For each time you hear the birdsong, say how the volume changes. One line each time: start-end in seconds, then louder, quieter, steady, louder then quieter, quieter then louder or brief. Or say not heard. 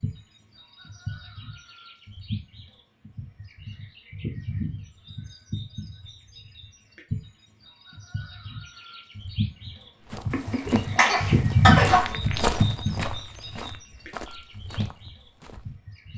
0.0-16.1 louder then quieter.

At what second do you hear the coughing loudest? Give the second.
12 s.